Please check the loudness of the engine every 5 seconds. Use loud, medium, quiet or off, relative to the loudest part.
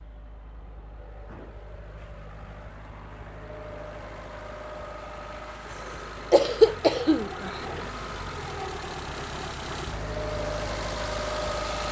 quiet, medium, loud.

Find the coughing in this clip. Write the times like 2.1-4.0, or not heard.
6.3-7.7.